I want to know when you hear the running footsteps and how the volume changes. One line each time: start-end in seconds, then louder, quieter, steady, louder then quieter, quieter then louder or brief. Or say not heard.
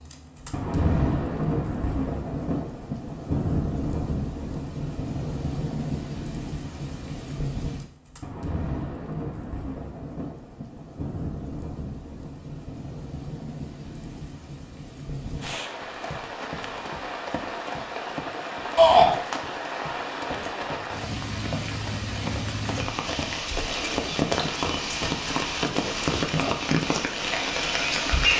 15.8-26.4 louder.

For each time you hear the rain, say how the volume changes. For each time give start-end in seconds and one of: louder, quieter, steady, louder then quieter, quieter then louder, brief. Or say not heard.
0.0-28.3 quieter then louder.